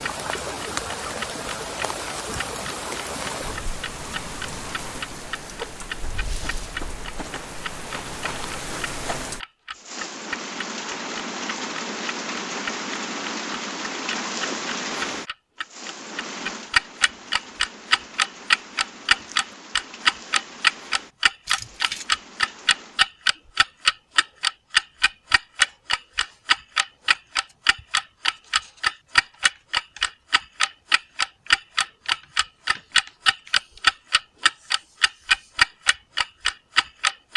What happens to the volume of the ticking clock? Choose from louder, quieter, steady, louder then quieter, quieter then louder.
louder.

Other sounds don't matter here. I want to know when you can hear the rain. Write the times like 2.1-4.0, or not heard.
0.0-23.1.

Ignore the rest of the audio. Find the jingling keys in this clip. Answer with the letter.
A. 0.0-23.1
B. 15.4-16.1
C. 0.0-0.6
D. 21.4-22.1
D.